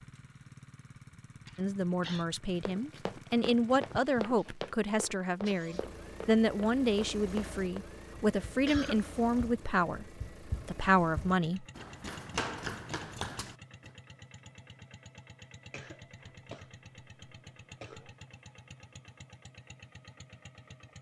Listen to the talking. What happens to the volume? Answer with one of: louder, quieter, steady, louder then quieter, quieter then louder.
steady.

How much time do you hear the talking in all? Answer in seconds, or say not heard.
10 s.